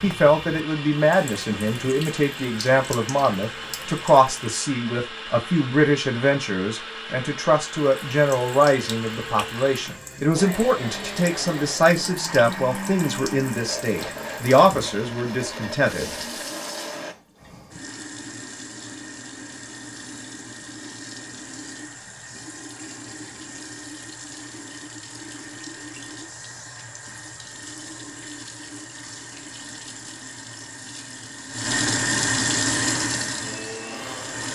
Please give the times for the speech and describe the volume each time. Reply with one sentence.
You can hear the speech from 0.0 to 16.1 s, at a steady volume.